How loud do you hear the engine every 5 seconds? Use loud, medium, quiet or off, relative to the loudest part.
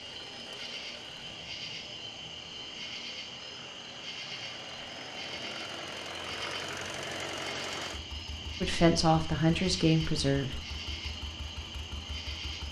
medium, loud, medium.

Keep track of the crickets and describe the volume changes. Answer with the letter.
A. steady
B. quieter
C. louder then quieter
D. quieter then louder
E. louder
A.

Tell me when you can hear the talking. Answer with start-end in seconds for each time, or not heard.
8.6-10.6.